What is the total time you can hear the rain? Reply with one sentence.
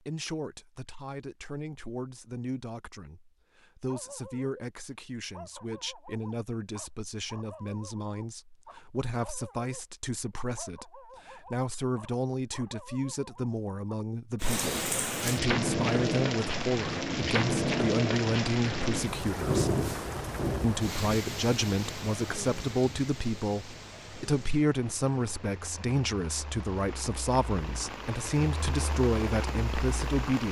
You can hear the rain for 16 seconds altogether.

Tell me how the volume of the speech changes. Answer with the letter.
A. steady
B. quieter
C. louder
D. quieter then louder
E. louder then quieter
C.